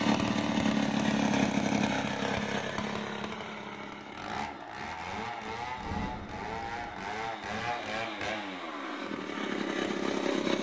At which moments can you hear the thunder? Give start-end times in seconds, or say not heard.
5.8-7.1.